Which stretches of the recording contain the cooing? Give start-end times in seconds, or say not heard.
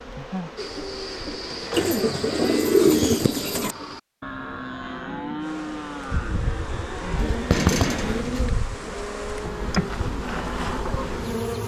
1.7-3.8, 7.2-8.5.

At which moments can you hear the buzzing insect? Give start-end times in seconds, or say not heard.
0.0-1.9, 5.4-11.6.